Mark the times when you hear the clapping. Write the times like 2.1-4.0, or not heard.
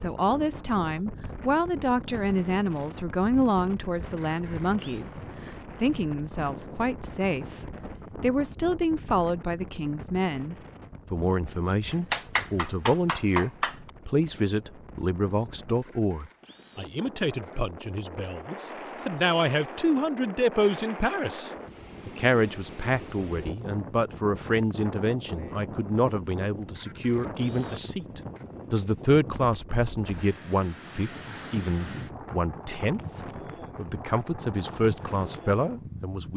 11.9-13.9.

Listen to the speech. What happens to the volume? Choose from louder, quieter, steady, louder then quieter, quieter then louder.
steady.